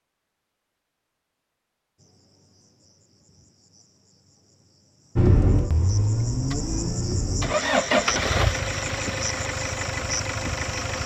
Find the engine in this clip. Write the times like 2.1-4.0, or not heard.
5.2-11.0.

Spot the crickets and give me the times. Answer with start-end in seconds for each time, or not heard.
1.9-11.0.